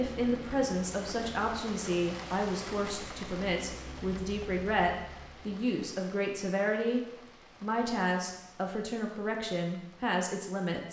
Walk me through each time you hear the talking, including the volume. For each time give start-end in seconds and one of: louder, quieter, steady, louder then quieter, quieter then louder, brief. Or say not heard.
0.0-10.8 steady.